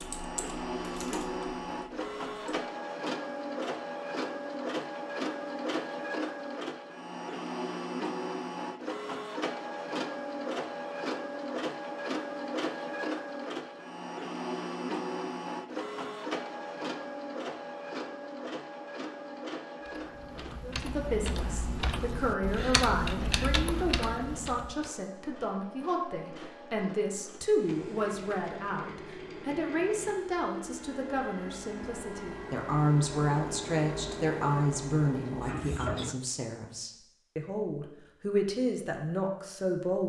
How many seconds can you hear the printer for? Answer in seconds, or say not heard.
36 s.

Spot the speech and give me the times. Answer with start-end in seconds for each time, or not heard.
20.6-40.0.